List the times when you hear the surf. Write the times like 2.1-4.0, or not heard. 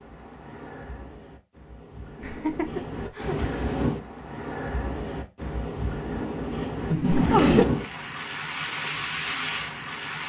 0.0-10.2.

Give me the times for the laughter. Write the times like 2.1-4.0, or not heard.
2.1-3.4, 6.9-7.7.